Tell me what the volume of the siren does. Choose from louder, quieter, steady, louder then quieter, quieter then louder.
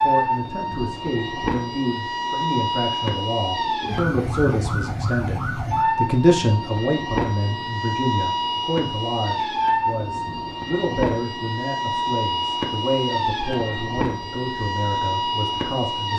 steady.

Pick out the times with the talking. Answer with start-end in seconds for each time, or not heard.
0.0-16.1.